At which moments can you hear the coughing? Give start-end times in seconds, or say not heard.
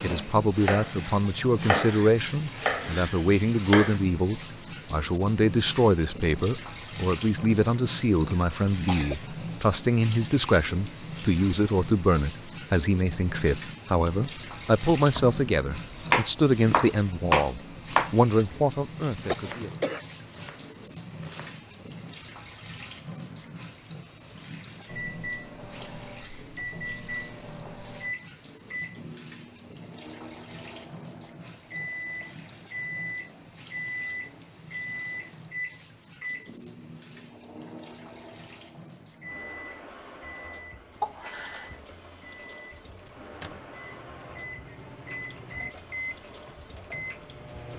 8.3-9.2, 19.2-20.1, 41.0-41.9.